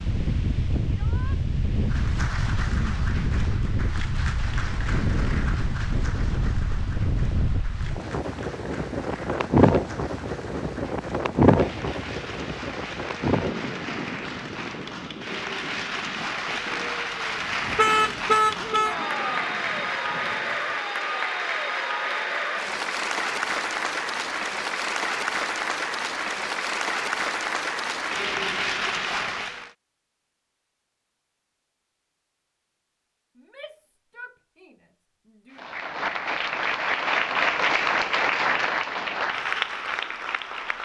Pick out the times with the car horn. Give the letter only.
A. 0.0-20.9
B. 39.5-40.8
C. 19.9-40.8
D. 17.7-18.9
D.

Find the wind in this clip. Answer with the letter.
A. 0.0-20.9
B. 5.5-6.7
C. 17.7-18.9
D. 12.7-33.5
A.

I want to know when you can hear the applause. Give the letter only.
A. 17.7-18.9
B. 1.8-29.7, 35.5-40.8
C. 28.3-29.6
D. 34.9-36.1
B.